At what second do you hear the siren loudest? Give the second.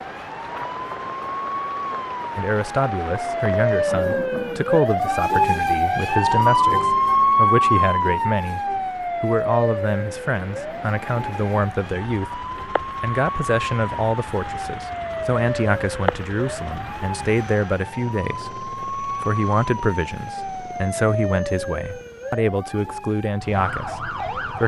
7 s.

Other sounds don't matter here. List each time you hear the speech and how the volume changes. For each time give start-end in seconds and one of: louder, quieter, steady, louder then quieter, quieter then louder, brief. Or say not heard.
2.4-24.6 steady.